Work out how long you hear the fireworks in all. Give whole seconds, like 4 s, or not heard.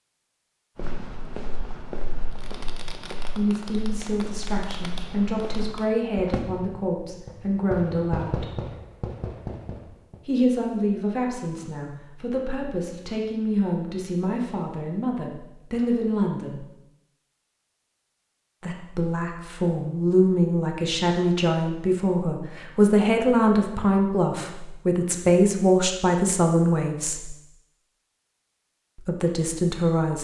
8 s.